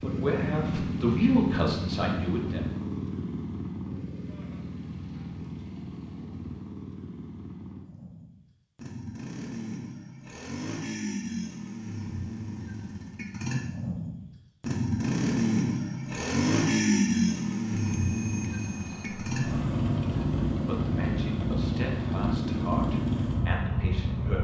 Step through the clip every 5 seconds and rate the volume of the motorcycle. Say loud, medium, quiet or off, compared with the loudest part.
medium, quiet, medium, loud, loud.